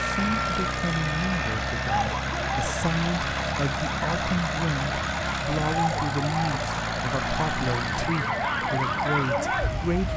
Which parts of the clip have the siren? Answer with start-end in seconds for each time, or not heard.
0.0-10.1.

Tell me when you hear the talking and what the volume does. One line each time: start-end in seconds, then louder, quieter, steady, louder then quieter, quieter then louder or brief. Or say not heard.
0.0-10.1 steady.